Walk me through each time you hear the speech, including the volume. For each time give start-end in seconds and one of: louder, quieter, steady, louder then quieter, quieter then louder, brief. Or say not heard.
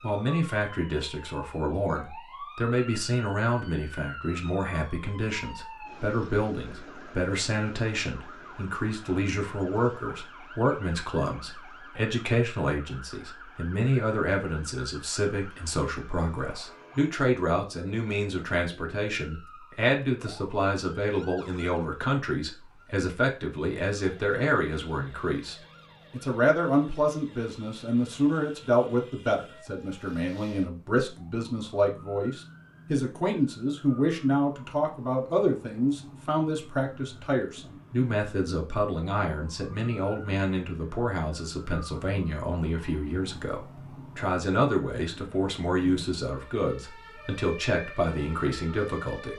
0.0-49.3 steady.